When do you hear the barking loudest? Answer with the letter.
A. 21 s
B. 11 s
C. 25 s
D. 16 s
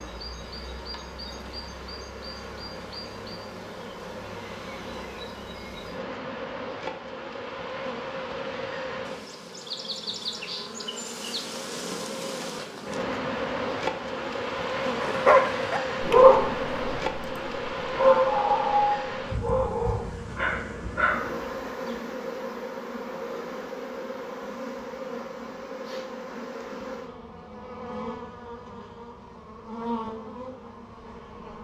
D.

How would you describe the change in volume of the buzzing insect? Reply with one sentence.
The volume of the buzzing insect goes up, then down.